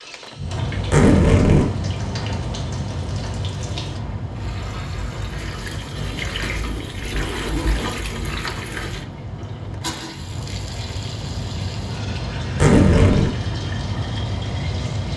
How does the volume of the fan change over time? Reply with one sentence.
The volume of the fan goes down, then up.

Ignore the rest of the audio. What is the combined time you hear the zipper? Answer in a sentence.
The zipper can be heard for 4 seconds in total.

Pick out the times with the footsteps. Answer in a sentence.
You can't hear the footsteps here.